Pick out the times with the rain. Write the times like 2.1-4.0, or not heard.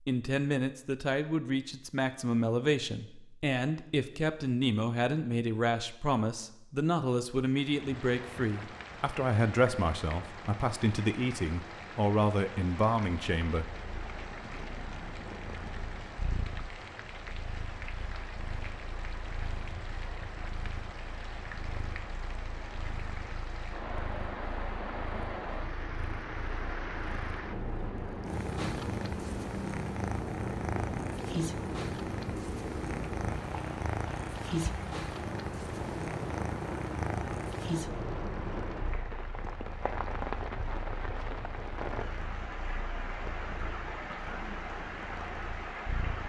7.5-46.2.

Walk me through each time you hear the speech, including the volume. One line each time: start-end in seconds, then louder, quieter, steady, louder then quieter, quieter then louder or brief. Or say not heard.
0.1-13.7 steady.